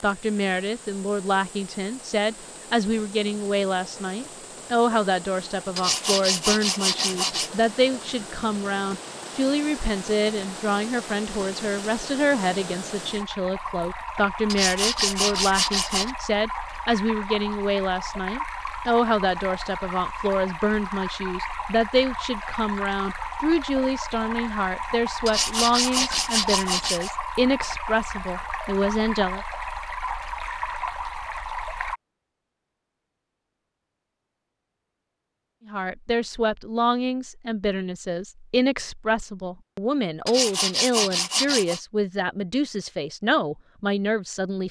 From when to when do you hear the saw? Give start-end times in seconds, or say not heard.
5.8-7.5, 14.5-16.1, 25.2-27.1, 40.2-41.8.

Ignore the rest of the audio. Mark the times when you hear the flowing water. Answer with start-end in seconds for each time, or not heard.
0.0-32.0.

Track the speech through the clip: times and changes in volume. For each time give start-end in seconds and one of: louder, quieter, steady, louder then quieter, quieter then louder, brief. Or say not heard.
0.0-29.4 steady
35.6-44.6 steady.